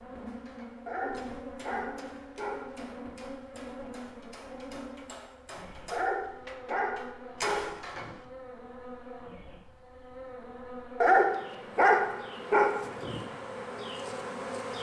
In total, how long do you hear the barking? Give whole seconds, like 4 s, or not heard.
6 s.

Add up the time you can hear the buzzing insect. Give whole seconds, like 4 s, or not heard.
15 s.